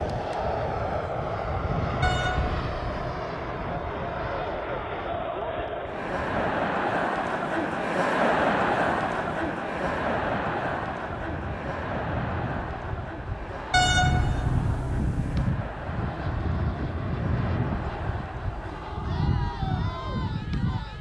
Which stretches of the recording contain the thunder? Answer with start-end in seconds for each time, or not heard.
not heard.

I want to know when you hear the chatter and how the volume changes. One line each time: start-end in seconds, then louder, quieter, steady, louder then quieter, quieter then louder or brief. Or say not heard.
0.0-20.9 louder then quieter.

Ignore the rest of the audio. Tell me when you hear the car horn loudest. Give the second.
14 s.